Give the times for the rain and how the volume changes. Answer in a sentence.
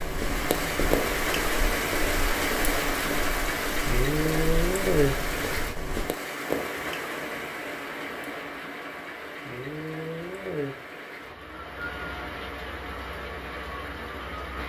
You can hear the rain from 0.0 to 14.6 s, getting quieter.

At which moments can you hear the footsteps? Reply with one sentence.
You can hear the footsteps from 0.0 to 6.1 s.